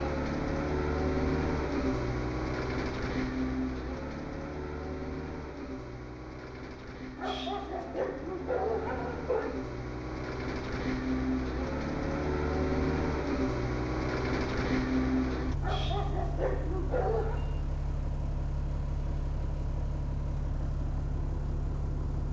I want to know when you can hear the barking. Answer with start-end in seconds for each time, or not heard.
7.2-9.5, 15.6-17.4.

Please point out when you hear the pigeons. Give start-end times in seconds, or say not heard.
not heard.